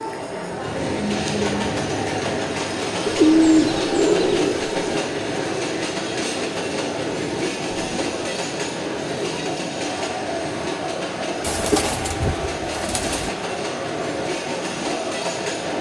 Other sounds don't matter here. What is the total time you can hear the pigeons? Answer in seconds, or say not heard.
4 s.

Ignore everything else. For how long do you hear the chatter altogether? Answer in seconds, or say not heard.
16 s.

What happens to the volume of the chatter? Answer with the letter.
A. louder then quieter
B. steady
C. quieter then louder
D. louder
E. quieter
B.